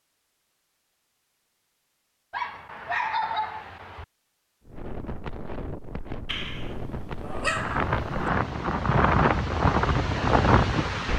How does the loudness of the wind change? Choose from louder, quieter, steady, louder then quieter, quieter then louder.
louder.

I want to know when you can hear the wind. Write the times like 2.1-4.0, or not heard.
4.7-11.1.